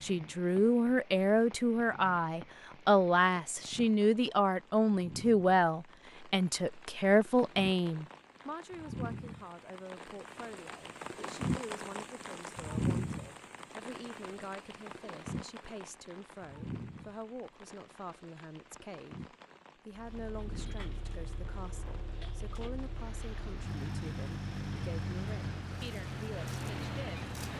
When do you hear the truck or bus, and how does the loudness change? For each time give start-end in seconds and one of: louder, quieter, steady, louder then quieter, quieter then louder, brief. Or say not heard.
19.9-27.5 louder.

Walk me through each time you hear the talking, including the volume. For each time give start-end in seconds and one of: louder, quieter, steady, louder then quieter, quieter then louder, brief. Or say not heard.
0.0-27.5 quieter.